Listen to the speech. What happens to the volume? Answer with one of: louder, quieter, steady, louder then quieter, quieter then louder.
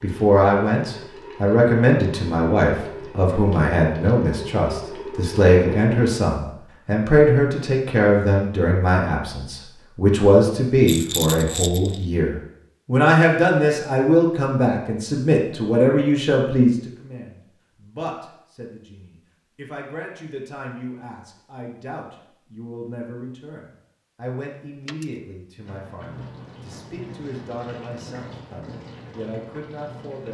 quieter.